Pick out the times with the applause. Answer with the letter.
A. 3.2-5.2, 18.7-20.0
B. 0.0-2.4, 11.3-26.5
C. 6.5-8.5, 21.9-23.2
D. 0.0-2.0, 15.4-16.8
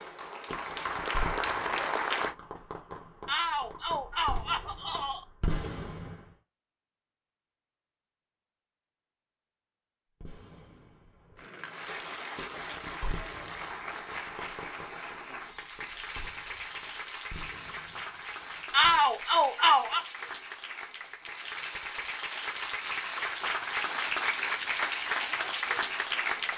B.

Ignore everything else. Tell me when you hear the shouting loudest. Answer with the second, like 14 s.
19 s.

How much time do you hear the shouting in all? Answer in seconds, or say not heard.
3 s.